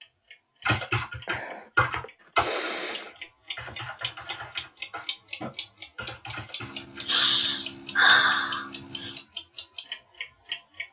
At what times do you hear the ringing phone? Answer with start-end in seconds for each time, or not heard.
not heard.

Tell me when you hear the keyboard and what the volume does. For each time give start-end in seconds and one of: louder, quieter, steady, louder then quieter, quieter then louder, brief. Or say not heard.
0.7-7.1 quieter.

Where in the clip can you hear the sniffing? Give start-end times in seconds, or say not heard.
1.2-3.1, 6.6-9.2.